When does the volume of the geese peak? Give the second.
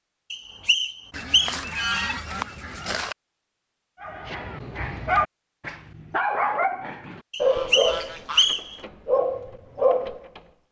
2 s.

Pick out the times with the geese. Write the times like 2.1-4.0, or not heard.
1.1-3.1, 7.4-8.8.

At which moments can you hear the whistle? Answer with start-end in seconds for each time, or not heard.
0.3-1.6, 7.3-8.8.